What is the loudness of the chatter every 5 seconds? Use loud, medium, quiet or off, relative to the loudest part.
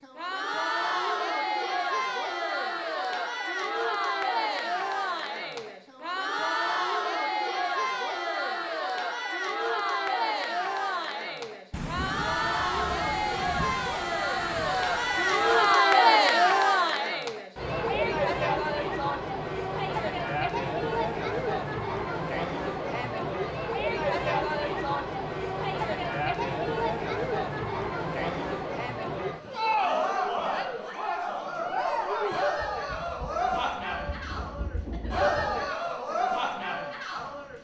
medium, medium, medium, loud, medium, medium, medium, medium.